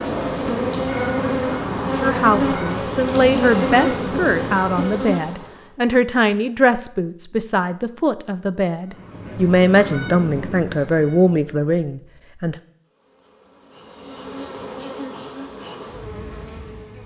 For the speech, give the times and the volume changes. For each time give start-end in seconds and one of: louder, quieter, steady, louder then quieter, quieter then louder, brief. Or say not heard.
2.0-12.6 steady.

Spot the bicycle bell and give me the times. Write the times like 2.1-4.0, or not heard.
not heard.